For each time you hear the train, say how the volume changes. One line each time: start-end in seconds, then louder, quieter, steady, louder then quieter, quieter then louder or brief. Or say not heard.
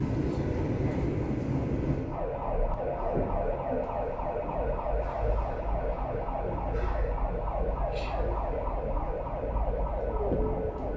0.0-10.9 quieter.